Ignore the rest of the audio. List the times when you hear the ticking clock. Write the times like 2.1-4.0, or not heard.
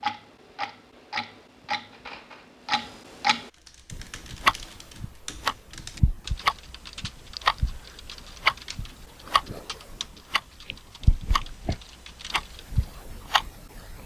0.0-14.0.